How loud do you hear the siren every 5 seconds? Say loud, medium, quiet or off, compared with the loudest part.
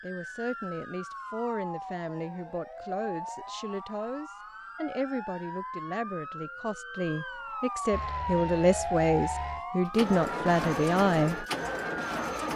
medium, loud, loud.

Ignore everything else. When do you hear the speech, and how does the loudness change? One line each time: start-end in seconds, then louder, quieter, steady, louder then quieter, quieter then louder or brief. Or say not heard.
0.0-11.4 louder.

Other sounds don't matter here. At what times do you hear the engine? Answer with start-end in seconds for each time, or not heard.
7.9-12.5.